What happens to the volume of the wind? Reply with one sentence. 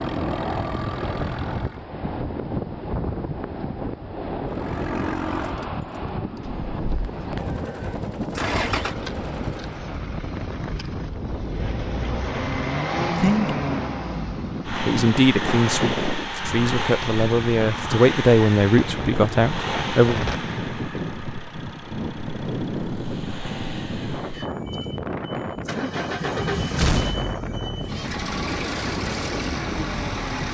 The volume of the wind stays about the same.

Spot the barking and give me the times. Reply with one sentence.
The barking can't be heard in this clip.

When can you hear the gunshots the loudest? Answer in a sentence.
The volume of the gunshots peaks at 27 seconds.